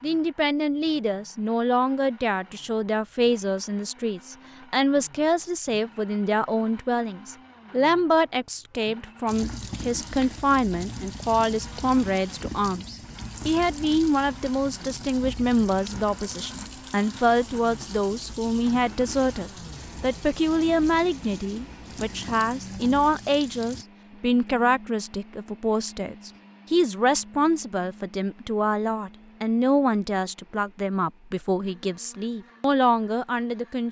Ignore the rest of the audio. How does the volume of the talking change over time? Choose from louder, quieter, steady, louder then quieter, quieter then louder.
steady.